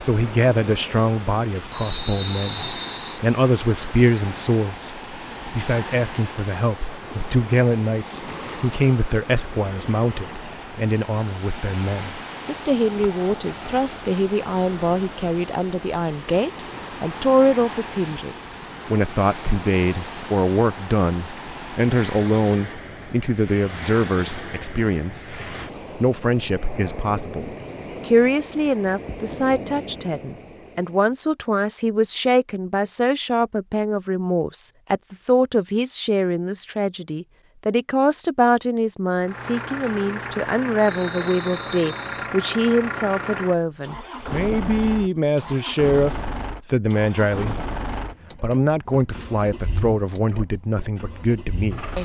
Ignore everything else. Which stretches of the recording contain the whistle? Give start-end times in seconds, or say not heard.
1.7-3.2, 40.8-42.3.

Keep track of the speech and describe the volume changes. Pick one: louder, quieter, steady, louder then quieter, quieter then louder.
steady.